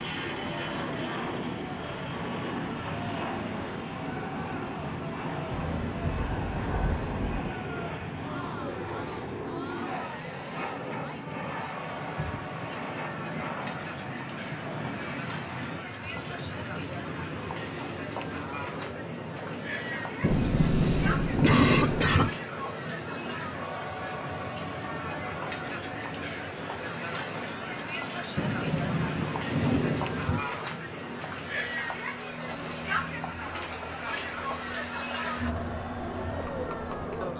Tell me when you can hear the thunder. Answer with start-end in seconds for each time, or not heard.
5.5-7.5, 20.2-22.2, 28.4-30.4.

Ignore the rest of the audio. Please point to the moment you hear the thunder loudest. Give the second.
22 s.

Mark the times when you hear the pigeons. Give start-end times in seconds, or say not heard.
not heard.